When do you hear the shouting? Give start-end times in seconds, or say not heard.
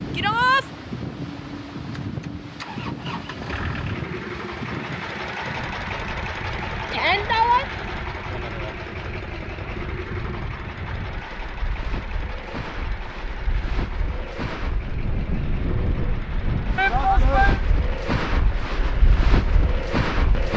0.1-0.7, 6.9-7.7, 16.8-17.6.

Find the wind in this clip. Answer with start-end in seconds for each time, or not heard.
0.0-20.5.